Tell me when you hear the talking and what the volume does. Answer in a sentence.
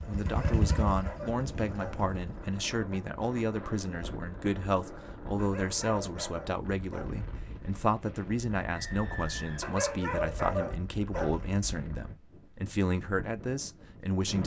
The talking can be heard from 0.1 to 14.4 s, at a steady volume.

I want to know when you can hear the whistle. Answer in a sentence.
You can hear the whistle from 8.7 to 9.8 s.